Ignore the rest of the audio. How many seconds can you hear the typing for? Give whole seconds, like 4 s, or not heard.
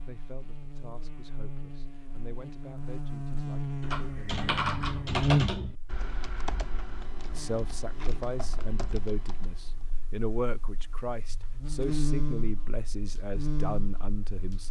6 s.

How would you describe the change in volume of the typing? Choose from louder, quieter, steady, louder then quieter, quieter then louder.
quieter.